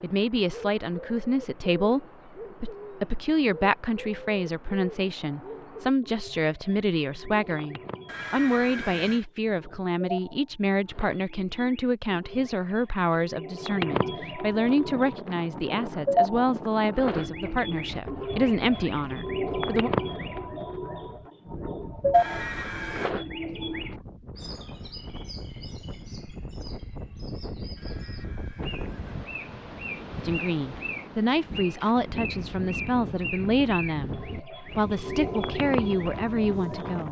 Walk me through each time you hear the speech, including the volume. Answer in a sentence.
You can hear the speech from 0.0 to 19.9 s, at a steady volume; and from 30.2 to 37.0 s, at a steady volume.